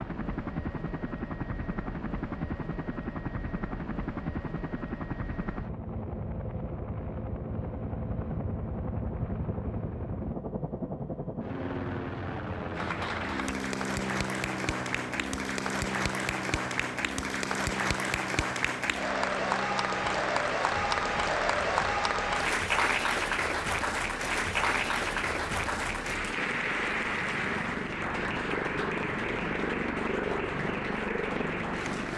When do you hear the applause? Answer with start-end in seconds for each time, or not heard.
12.8-32.1.